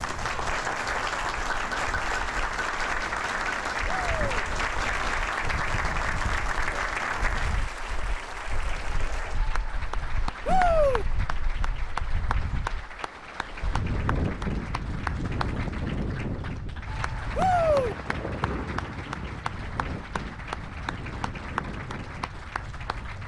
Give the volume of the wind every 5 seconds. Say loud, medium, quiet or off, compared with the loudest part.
medium, medium, loud, loud, medium.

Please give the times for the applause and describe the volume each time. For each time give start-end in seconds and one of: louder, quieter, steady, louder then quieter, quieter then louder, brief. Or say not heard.
0.0-23.2 quieter.